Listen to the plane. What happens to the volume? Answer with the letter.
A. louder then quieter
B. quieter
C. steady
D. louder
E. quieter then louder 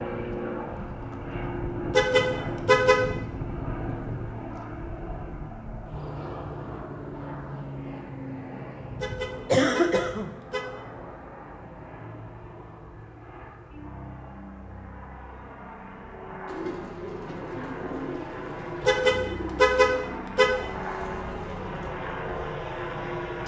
E.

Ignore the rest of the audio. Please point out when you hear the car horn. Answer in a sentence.
The car horn can be heard from 1.9 to 3.0 s, from 9.0 to 10.7 s and from 18.9 to 20.5 s.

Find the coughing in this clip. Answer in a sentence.
You can hear the coughing from 9.4 to 10.3 s.